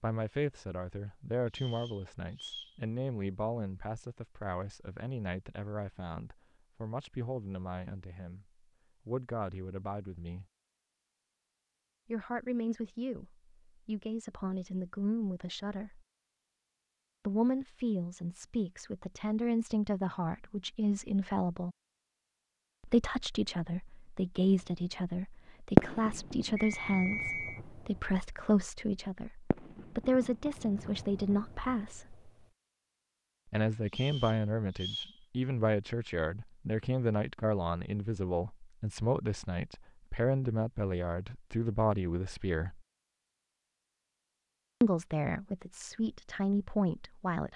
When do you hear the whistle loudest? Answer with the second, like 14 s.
27 s.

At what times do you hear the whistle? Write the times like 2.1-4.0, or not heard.
1.5-2.8, 26.6-27.6, 33.9-35.1.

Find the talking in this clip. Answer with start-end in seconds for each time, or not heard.
0.0-10.4, 12.1-16.0, 17.2-21.8, 22.8-32.1, 33.5-42.8, 44.8-47.5.